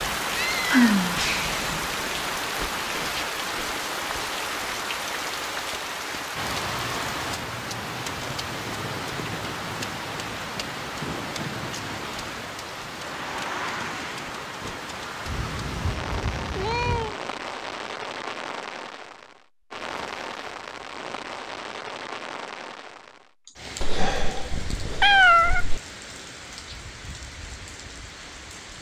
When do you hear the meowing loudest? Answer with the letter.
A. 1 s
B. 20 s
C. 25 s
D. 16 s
C.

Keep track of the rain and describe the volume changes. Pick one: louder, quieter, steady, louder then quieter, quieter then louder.
quieter.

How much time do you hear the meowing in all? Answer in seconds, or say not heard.
5 s.